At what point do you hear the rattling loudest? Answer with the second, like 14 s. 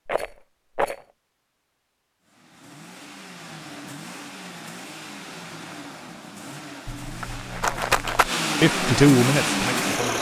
8 s.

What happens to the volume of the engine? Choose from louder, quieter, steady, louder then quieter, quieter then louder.
louder.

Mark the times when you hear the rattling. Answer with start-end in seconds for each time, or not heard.
0.1-1.1, 6.8-8.3.